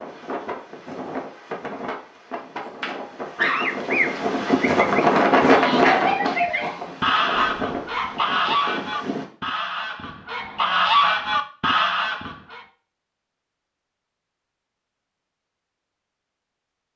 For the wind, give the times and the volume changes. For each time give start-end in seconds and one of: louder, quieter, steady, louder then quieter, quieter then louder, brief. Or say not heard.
0.0-9.2 louder then quieter.